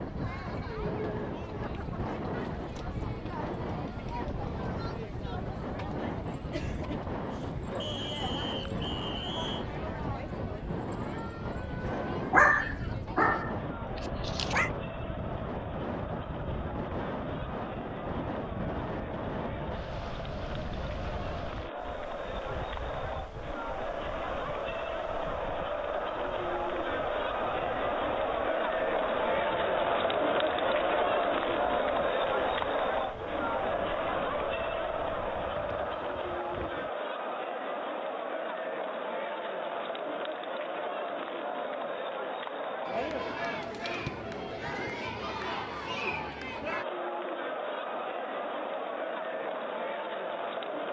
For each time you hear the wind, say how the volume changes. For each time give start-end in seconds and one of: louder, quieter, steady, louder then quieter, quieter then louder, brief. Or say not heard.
0.0-36.9 quieter.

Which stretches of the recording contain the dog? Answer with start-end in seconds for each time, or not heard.
12.3-13.6, 14.2-14.7.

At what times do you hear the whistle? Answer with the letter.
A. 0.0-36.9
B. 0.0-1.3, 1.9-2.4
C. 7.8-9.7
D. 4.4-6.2
C.